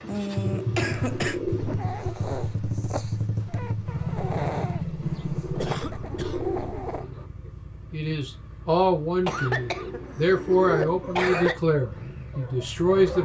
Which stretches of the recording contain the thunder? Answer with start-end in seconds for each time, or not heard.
not heard.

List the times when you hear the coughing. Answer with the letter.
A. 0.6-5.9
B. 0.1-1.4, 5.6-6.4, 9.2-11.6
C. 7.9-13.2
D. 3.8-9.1
B.